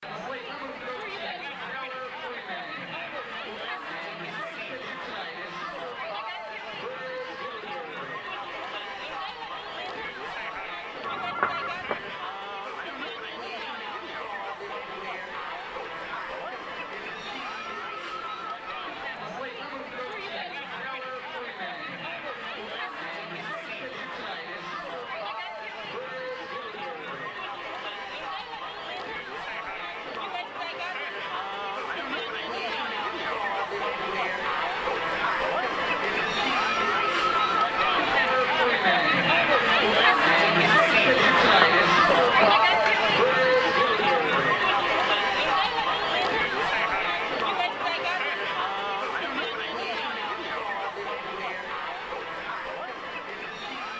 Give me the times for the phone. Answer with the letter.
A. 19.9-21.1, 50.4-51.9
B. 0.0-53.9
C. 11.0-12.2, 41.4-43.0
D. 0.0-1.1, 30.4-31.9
C.